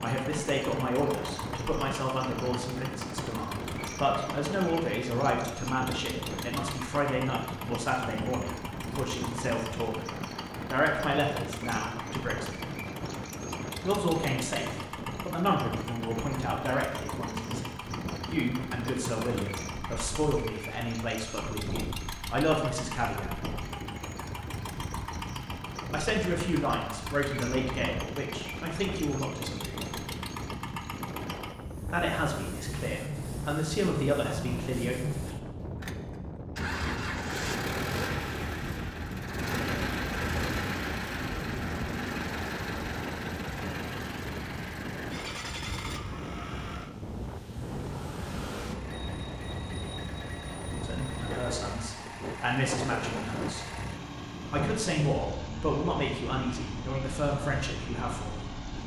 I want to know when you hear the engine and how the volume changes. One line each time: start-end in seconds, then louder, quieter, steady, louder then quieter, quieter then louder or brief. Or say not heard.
0.0-58.8 louder then quieter.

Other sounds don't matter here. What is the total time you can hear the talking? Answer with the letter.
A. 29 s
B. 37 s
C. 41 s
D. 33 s
B.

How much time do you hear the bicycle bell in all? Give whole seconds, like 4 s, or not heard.
3 s.